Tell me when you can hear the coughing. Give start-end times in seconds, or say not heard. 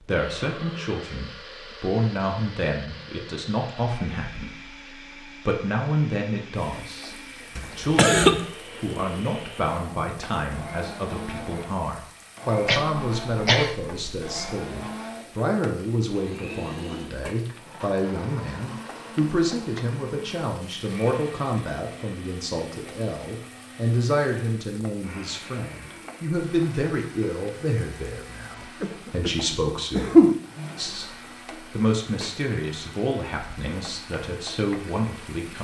7.5-8.4, 12.7-14.3, 28.8-30.4.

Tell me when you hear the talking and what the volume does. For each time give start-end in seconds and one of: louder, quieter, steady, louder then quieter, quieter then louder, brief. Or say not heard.
0.0-35.5 steady.